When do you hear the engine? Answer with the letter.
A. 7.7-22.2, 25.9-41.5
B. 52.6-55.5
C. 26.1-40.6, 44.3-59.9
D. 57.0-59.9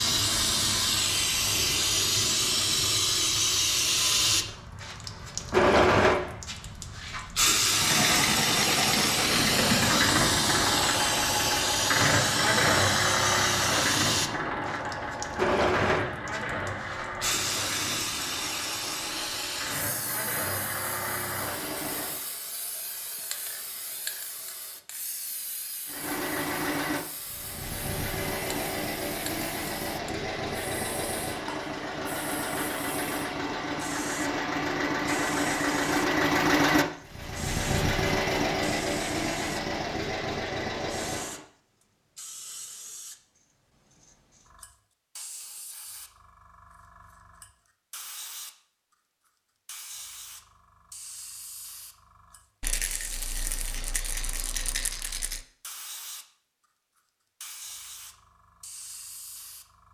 A.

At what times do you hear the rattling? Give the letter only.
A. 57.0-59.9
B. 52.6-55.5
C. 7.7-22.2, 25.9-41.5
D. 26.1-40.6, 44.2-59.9
B.